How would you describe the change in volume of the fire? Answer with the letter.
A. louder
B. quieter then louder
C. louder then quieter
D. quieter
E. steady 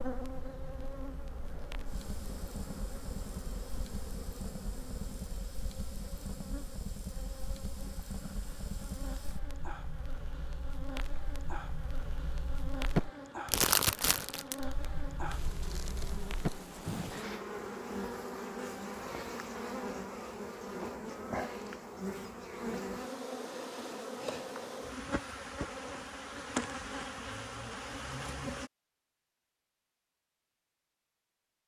A.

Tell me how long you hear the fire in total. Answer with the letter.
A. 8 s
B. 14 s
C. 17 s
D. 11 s
C.